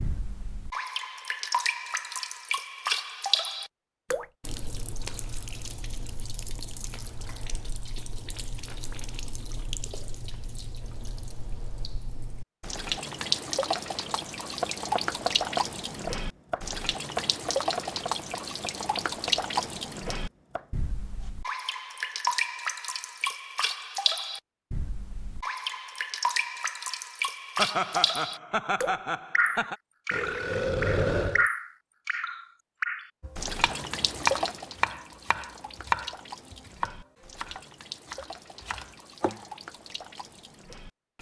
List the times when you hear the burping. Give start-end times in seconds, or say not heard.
30.1-31.4.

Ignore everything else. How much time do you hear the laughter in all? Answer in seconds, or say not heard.
2 s.